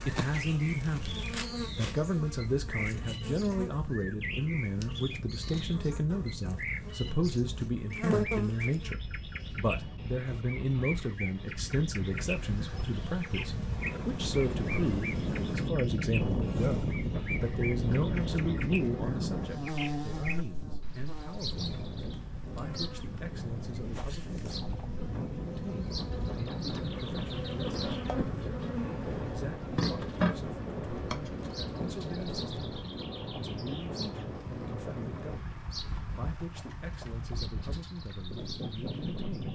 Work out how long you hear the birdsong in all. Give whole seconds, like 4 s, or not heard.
39 s.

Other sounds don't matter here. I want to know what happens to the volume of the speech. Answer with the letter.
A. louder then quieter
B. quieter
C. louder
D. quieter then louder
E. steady
B.